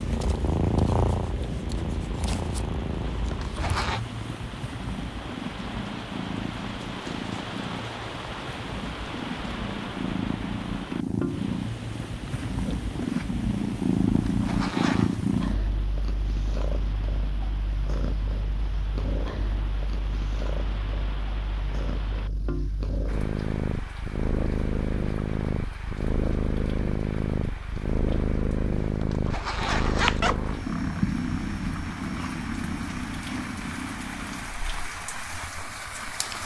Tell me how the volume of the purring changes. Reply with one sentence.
The loudness of the purring stays about the same.